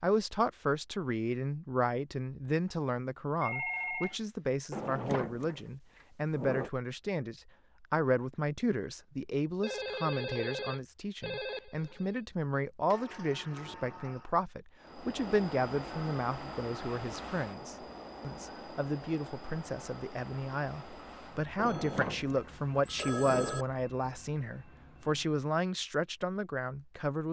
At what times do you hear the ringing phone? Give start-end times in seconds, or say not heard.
3.4-4.2, 9.6-12.2, 21.6-23.6.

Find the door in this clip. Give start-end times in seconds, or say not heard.
4.7-6.7, 12.9-14.3, 21.6-23.6.